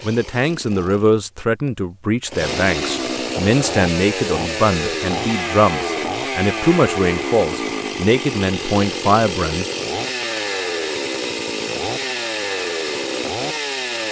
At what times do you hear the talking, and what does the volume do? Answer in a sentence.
You can hear the talking from 0.0 to 9.7 s, at a steady volume.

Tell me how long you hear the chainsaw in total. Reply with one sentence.
The chainsaw can be heard for 14 seconds in total.